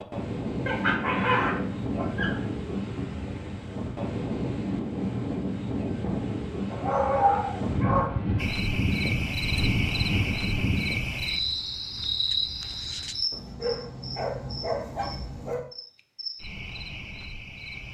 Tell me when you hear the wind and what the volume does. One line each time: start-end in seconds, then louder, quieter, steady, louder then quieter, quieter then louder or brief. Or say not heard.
0.0-11.2 steady.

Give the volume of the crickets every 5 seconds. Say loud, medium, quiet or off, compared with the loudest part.
off, loud, loud, medium.